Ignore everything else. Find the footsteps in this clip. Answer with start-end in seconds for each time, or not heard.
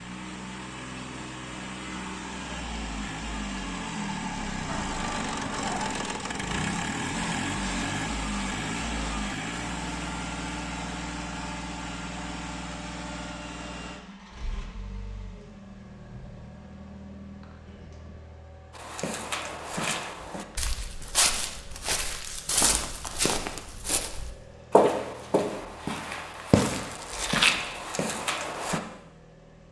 18.8-28.8.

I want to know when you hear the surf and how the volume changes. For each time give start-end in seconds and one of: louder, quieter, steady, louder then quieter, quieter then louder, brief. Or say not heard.
not heard.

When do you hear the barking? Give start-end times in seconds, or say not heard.
not heard.